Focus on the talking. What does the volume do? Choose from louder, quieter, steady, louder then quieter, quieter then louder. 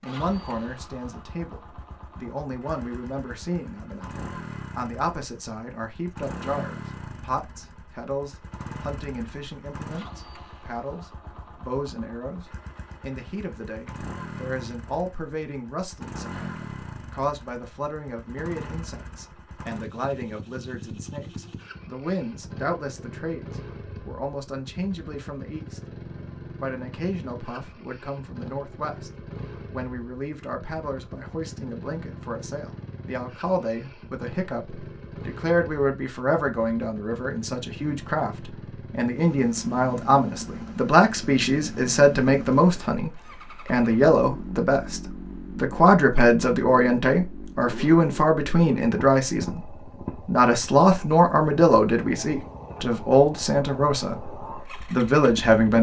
louder.